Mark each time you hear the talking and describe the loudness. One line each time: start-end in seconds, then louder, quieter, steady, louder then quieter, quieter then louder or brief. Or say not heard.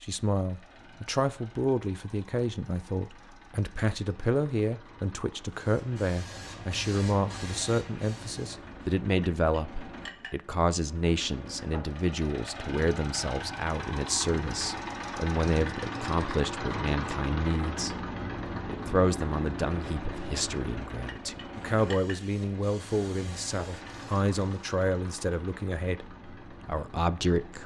0.0-27.6 steady.